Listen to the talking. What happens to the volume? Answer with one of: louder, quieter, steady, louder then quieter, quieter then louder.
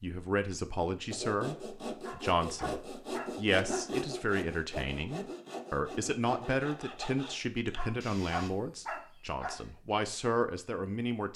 steady.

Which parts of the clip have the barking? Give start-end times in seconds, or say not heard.
2.0-4.0, 7.8-9.7.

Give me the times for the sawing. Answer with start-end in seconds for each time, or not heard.
1.1-8.5.